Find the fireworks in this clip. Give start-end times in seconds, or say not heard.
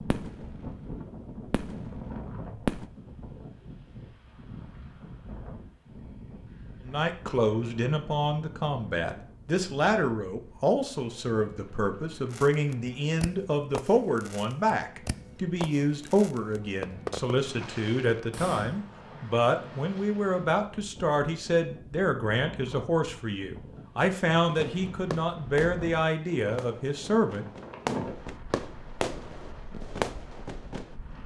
0.0-0.8, 1.4-3.1, 12.3-18.9, 24.4-30.9.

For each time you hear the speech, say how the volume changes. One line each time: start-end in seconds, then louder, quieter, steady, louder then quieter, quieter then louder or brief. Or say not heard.
6.8-27.4 steady.